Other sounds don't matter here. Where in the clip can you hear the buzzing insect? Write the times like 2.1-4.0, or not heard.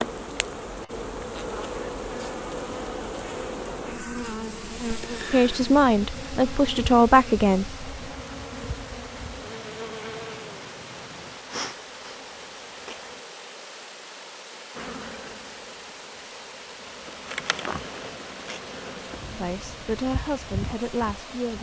0.0-13.2, 14.8-21.5.